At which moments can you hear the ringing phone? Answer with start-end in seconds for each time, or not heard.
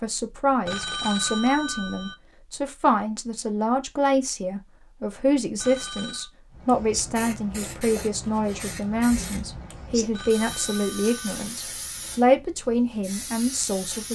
0.7-2.1, 5.5-6.3, 10.1-11.4.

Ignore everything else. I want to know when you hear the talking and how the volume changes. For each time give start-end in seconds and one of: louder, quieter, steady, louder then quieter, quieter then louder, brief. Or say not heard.
0.0-14.0 steady.